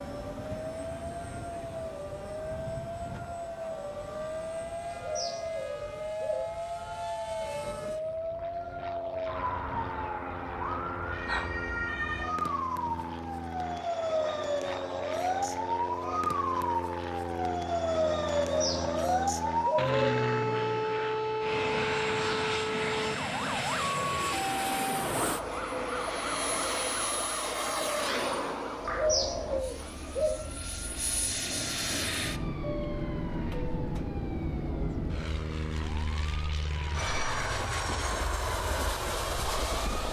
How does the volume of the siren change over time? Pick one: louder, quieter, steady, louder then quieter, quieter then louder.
louder then quieter.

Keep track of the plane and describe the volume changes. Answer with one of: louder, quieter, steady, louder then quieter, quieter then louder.
louder.